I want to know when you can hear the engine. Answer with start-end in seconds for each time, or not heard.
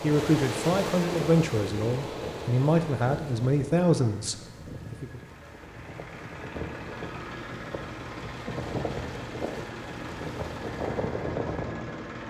0.0-12.2.